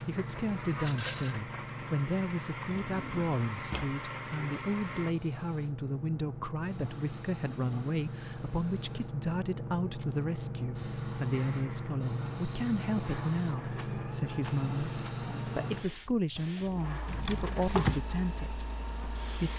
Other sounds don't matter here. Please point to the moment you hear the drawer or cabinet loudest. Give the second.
18 s.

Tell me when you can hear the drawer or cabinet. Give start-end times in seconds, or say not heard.
2.6-4.0, 17.1-18.1.